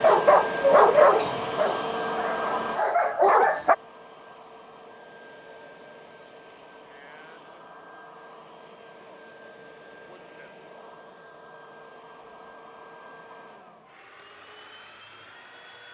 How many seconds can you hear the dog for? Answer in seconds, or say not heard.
4 s.